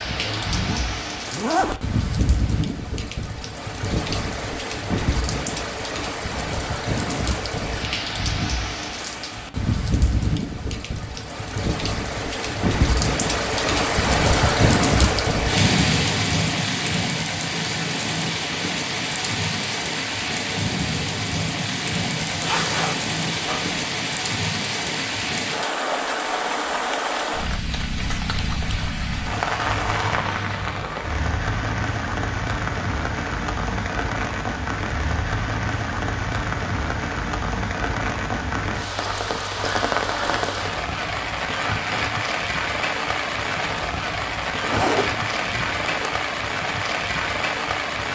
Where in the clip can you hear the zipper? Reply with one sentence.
The zipper can be heard from 0.1 to 1.8 s, from 22.2 to 23.8 s and from 44.6 to 46.1 s.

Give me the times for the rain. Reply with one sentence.
You can hear the rain from 0.0 to 48.1 s.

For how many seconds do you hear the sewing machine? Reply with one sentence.
You can't hear the sewing machine here.